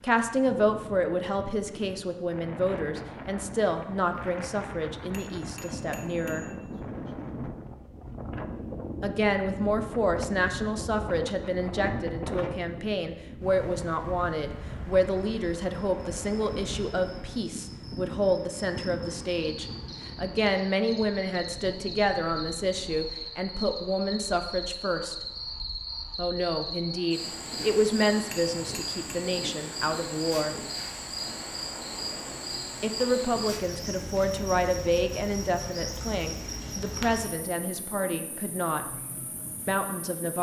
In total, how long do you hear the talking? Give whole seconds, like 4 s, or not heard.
34 s.